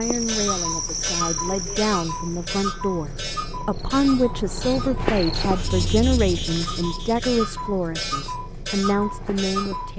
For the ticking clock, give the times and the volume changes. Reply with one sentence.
The ticking clock can be heard from 0.0 to 9.9 s, getting quieter then louder.